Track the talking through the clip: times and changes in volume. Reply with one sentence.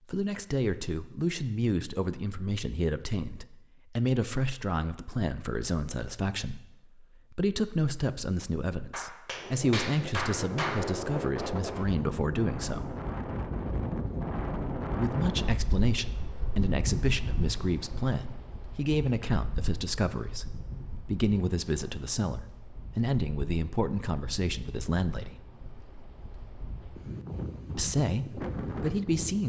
You can hear the talking from 0.1 to 12.9 s, at a steady volume; from 14.9 to 25.4 s, at a steady volume; and briefly from 27.8 to 29.4 s.